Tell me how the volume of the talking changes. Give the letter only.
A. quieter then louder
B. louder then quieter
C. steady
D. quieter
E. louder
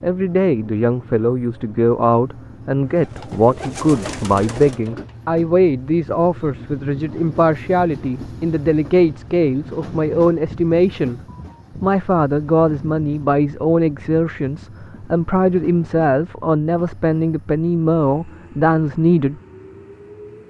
C.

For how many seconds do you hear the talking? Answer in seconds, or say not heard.
19 s.